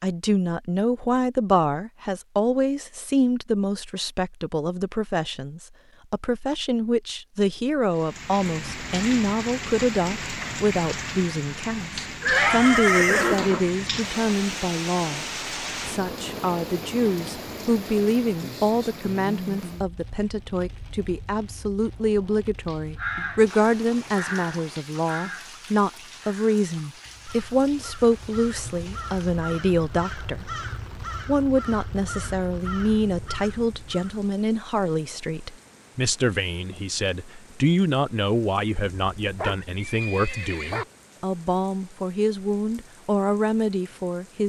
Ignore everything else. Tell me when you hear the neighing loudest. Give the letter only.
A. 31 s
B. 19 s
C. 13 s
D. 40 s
C.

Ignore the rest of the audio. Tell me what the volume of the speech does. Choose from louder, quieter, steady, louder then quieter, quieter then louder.
steady.